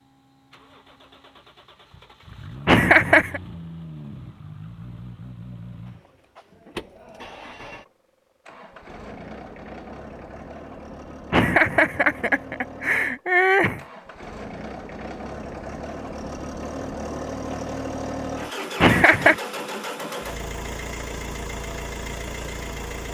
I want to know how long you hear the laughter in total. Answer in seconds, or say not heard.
4 s.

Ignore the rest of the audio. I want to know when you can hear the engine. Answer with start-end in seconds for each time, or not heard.
0.0-23.0.